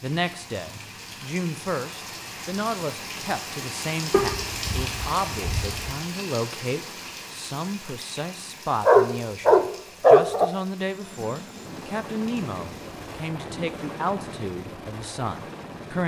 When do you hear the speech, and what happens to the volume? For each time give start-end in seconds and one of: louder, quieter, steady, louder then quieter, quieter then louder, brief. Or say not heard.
0.0-16.0 steady.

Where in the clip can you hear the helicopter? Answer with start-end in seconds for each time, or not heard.
10.8-16.0.